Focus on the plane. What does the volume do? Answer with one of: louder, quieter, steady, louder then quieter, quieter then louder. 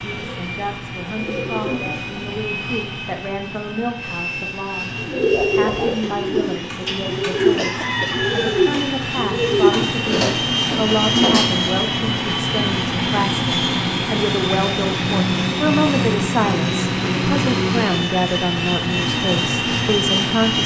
louder.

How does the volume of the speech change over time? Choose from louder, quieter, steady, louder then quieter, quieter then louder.
louder.